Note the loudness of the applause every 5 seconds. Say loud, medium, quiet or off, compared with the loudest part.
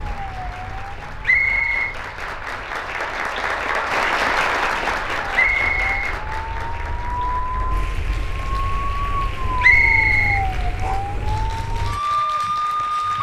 loud, medium, quiet.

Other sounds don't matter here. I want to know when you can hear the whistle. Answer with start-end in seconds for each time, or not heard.
1.2-1.9, 5.3-6.0, 9.6-10.9.